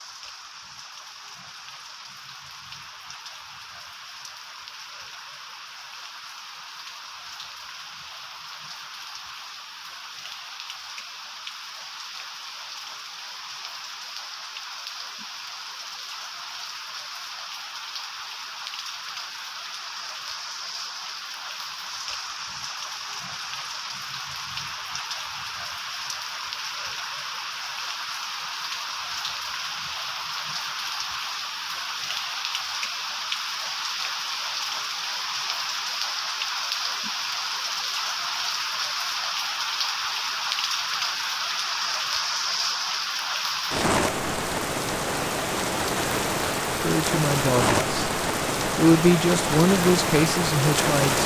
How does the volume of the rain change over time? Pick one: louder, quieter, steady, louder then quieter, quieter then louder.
louder.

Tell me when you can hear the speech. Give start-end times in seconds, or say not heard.
46.8-48.1, 48.8-51.2.